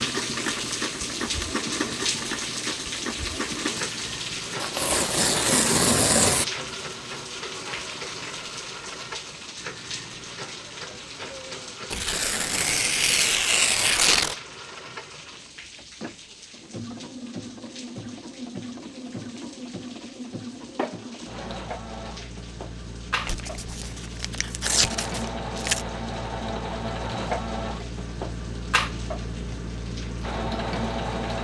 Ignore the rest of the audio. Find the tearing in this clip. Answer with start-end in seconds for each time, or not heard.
4.6-6.5, 11.9-14.3, 23.2-25.9.